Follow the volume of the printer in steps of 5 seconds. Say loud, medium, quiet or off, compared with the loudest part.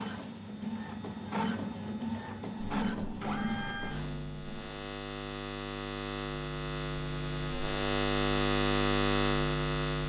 loud, off.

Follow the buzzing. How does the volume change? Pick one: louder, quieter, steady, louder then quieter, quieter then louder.
louder.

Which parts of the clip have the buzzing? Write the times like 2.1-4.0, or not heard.
2.5-10.0.